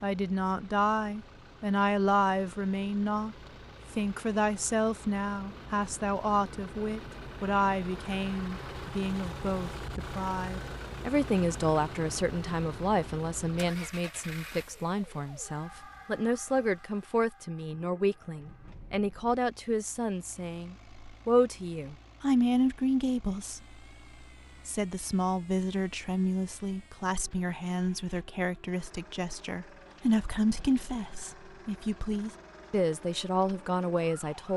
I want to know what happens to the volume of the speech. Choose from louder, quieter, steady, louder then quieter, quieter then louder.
steady.